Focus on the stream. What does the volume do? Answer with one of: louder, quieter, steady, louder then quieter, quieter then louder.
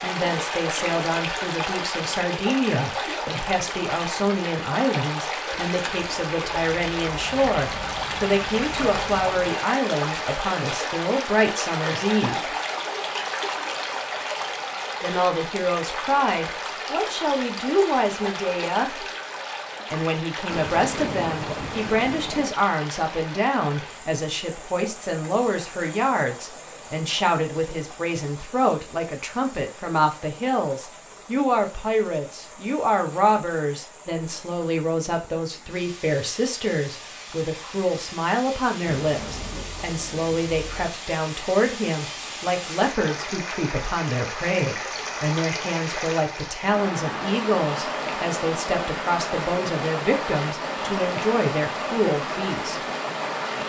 quieter then louder.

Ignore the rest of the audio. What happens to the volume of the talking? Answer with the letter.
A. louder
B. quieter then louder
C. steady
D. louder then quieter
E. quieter
C.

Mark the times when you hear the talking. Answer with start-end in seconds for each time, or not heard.
0.0-12.6, 15.0-19.1, 19.9-52.9.